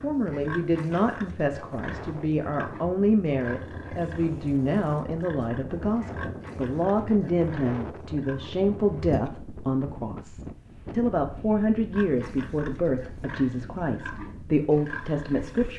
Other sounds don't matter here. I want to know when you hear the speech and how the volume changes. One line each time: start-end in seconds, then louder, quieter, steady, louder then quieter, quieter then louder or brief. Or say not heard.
0.0-15.7 steady.